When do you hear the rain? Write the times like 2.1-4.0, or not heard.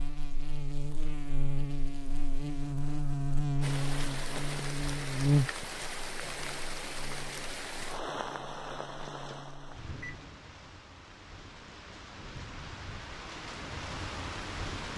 3.6-14.9.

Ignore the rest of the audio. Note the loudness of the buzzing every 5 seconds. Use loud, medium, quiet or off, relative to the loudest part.
loud, loud, off.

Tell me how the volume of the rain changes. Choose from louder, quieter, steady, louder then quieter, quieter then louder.
quieter then louder.